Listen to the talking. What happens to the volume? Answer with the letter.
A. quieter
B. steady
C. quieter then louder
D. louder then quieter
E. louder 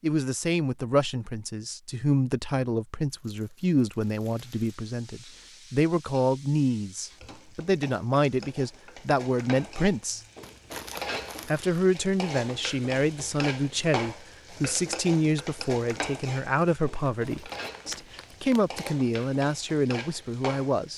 B.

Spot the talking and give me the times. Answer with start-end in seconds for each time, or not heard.
0.0-10.2, 11.4-20.9.